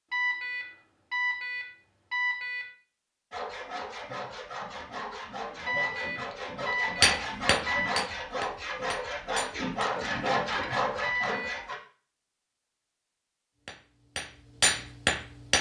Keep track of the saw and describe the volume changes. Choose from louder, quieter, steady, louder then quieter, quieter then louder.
louder.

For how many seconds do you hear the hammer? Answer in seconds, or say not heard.
5 s.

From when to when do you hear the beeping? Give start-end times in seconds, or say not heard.
0.1-2.7, 5.7-8.0, 11.0-11.6.